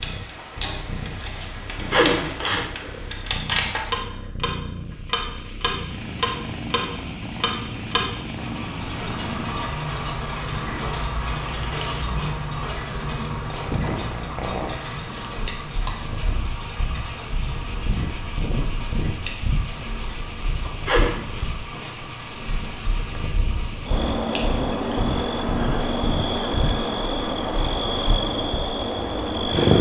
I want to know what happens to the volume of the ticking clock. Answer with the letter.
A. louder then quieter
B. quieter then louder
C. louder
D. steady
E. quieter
E.